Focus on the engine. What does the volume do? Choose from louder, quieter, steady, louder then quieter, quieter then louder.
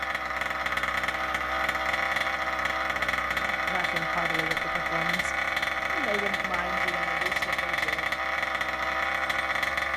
steady.